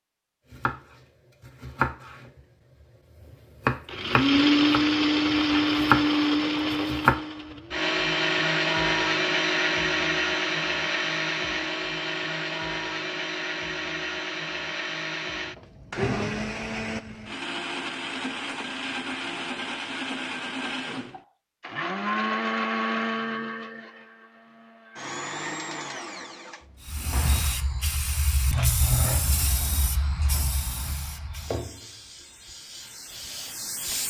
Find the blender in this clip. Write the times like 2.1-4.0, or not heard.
3.9-27.5.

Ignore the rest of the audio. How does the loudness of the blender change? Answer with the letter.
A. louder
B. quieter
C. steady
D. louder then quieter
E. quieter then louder
B.